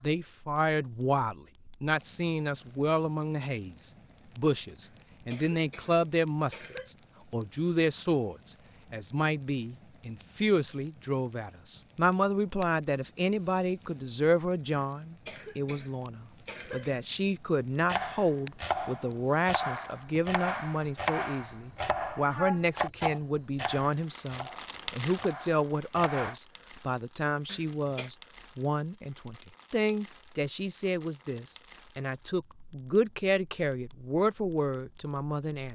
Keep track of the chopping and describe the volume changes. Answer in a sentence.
The volume of the chopping goes down.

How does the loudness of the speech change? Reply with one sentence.
The loudness of the speech stays about the same.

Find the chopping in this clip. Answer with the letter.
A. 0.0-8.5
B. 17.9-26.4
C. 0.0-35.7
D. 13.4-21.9
B.